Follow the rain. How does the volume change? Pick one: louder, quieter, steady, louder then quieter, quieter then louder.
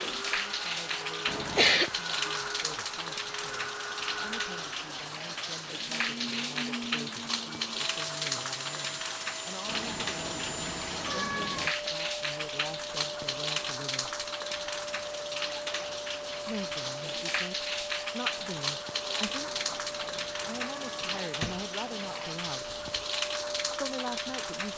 steady.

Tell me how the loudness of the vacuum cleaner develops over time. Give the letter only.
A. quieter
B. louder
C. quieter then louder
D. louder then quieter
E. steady
E.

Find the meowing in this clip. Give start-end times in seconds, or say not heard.
1.2-1.9, 9.7-11.7, 19.4-21.2.